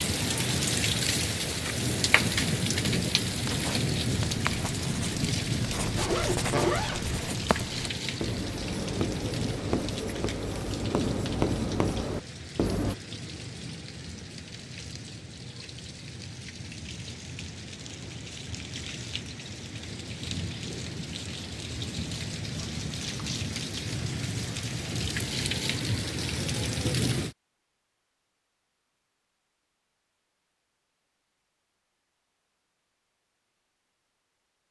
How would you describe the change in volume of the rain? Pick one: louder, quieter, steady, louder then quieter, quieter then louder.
quieter then louder.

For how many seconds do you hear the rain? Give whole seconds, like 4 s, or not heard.
27 s.